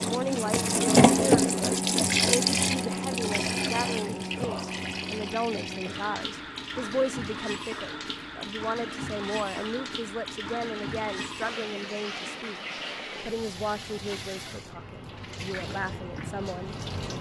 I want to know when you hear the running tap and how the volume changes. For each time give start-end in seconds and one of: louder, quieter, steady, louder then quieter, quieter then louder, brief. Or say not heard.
0.0-17.1 quieter.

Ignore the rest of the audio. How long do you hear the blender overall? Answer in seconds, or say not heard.
not heard.